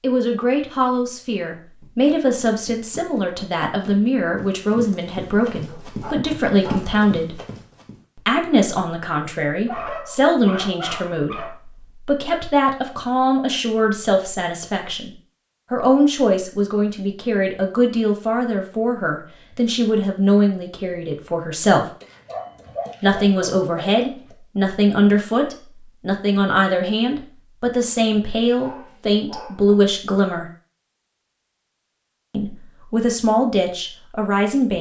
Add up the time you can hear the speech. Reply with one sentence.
You can hear the speech for 30 seconds altogether.